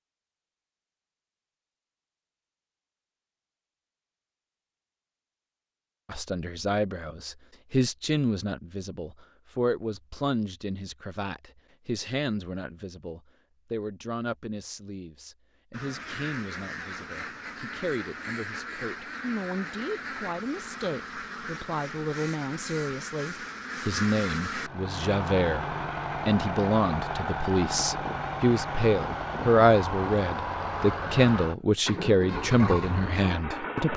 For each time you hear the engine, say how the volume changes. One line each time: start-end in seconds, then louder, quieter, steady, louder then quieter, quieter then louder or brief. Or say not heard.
24.6-33.9 steady.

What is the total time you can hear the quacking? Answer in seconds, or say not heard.
9 s.